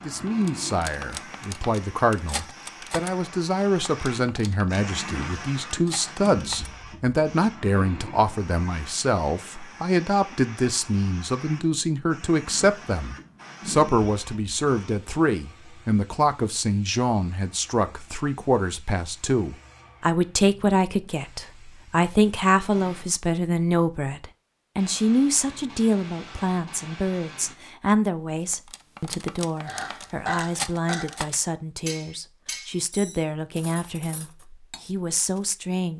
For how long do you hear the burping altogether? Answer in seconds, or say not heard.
2 s.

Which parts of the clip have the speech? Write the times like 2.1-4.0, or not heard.
0.0-35.9.